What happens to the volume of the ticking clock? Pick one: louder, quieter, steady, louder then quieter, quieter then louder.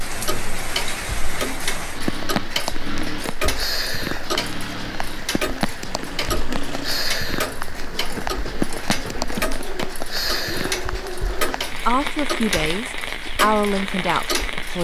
steady.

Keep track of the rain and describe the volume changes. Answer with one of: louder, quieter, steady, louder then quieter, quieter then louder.
steady.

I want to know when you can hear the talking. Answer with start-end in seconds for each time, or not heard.
11.8-14.7.